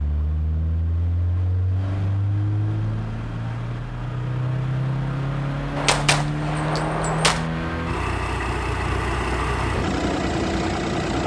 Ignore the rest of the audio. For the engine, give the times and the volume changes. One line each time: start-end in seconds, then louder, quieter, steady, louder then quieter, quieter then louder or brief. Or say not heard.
0.0-11.2 louder.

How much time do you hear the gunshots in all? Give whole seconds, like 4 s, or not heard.
2 s.